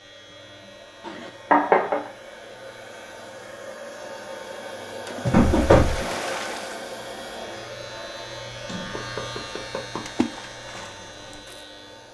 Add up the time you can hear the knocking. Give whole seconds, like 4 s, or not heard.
3 s.